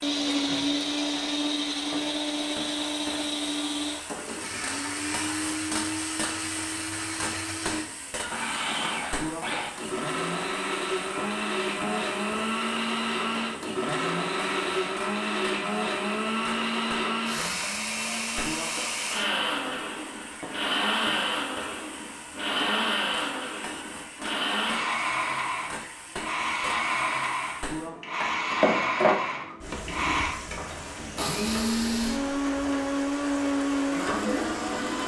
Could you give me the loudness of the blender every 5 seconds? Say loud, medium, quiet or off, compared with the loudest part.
loud, medium, loud, loud, loud, loud, loud.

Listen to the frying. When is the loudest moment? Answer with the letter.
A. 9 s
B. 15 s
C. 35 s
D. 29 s
D.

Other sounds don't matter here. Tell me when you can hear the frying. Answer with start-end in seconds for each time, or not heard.
0.0-35.0.